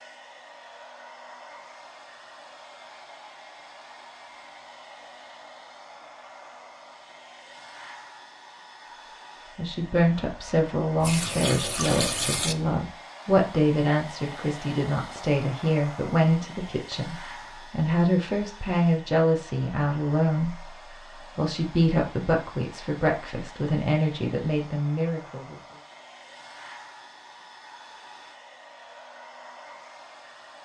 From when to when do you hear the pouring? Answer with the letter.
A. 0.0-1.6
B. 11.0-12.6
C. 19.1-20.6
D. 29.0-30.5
B.